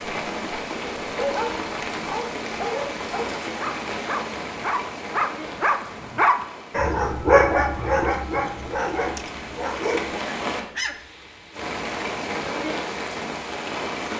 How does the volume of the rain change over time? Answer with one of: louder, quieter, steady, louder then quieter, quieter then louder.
quieter then louder.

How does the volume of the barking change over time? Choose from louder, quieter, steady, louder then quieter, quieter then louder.
louder then quieter.